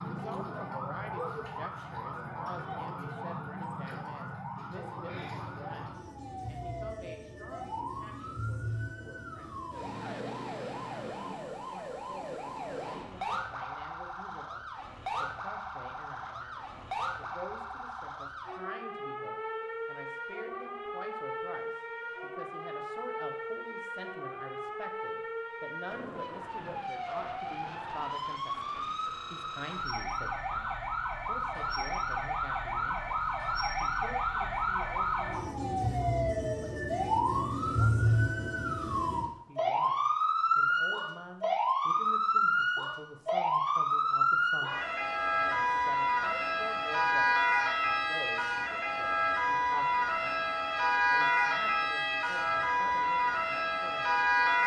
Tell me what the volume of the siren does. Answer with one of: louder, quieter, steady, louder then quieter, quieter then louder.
louder.